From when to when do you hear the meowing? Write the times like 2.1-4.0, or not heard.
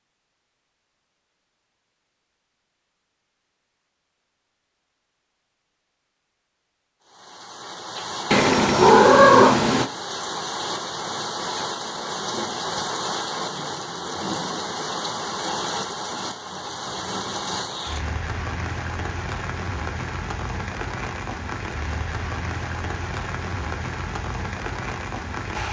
8.3-9.9.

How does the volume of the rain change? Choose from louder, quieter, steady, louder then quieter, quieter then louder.
steady.